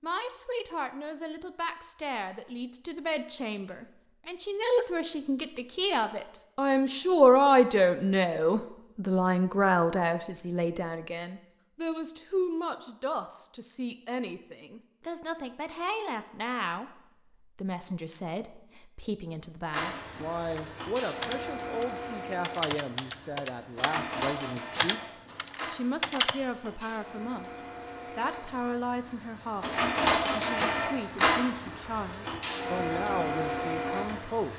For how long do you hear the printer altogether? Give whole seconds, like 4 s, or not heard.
15 s.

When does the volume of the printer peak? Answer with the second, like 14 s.
30 s.